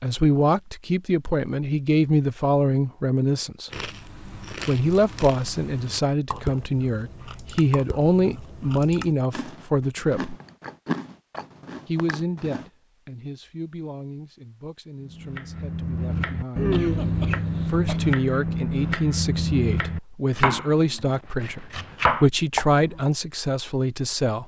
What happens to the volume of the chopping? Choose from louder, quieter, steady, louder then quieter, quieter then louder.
steady.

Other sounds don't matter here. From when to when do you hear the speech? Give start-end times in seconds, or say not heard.
0.0-3.7, 4.5-10.3, 11.8-16.7, 17.6-24.4.